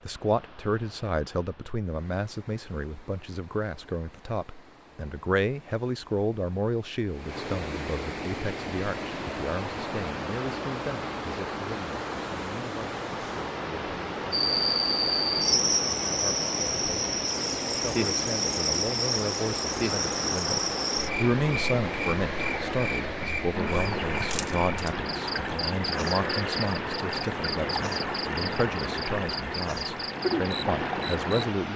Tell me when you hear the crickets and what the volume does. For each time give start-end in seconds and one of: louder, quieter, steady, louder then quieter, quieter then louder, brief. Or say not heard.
14.3-31.4 quieter.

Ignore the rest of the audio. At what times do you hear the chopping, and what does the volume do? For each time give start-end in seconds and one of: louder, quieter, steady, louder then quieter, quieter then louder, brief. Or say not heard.
not heard.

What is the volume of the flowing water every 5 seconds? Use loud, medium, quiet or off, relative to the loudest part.
quiet, medium, loud, loud, loud, loud, loud.